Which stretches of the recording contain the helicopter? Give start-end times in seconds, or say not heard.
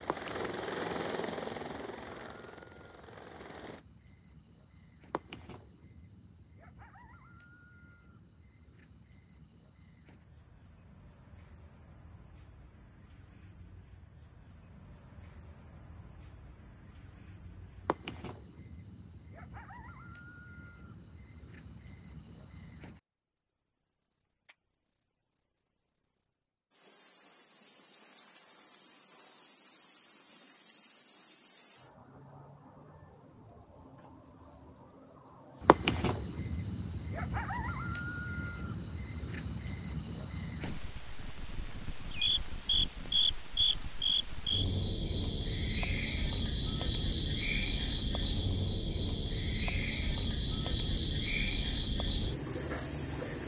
0.0-3.9.